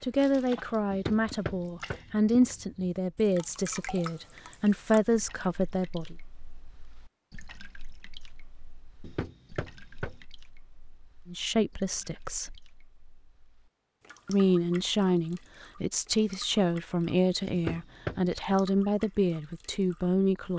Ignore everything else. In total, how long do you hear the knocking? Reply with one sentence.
The knocking can be heard for 3 seconds in total.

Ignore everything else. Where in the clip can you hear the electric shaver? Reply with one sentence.
You can't hear the electric shaver here.